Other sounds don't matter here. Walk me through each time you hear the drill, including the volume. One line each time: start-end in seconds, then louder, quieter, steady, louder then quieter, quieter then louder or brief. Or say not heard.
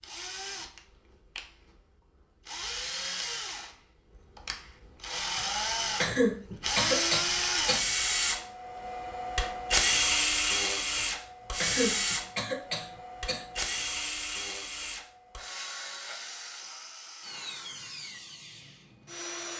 0.0-19.5 louder then quieter.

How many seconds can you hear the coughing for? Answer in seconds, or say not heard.
5 s.